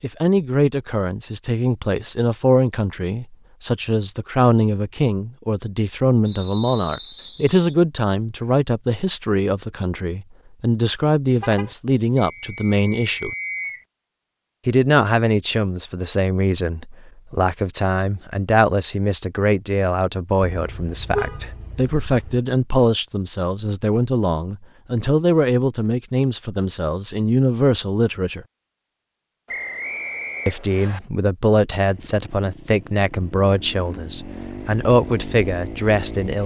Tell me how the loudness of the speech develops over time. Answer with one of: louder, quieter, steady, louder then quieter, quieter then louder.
steady.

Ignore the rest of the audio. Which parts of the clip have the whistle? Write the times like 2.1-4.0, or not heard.
6.2-7.6, 12.2-13.8, 29.4-31.0.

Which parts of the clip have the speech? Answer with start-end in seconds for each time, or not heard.
0.0-13.3, 14.7-28.4, 30.4-36.4.